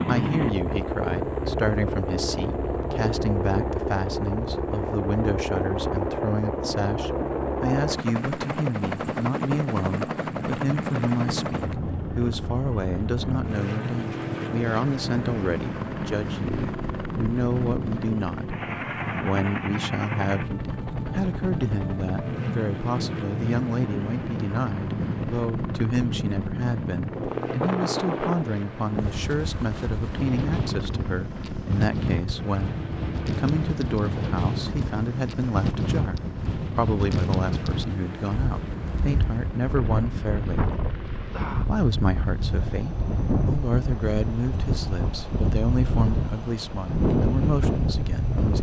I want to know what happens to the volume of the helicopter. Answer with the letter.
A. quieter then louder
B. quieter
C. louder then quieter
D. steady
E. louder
B.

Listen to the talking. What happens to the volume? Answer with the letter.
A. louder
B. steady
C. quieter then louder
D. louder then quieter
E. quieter
B.